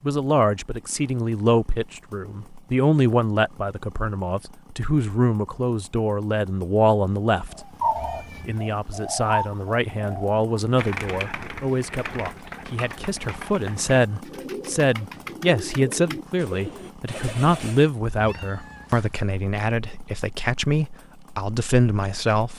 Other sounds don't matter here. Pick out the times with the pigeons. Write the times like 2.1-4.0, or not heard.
7.5-17.9.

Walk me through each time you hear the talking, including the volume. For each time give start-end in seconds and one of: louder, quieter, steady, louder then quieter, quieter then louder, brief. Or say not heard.
0.0-7.7 steady
8.4-22.5 steady.